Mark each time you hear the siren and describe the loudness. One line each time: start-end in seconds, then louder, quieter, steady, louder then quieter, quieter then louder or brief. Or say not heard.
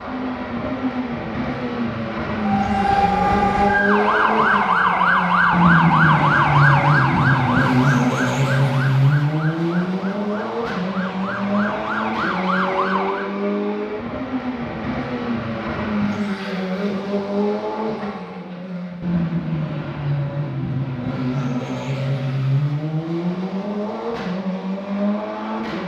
2.4-13.3 quieter then louder.